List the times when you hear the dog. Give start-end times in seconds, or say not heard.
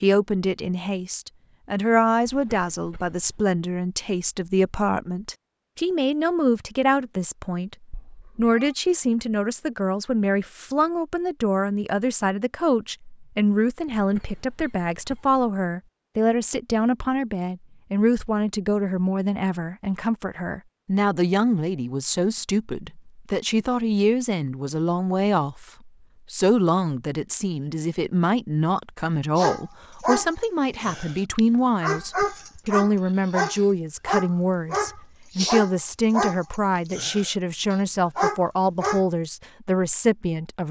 29.4-39.0.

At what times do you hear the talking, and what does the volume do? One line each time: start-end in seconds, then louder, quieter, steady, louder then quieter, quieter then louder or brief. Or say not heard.
0.0-40.6 steady.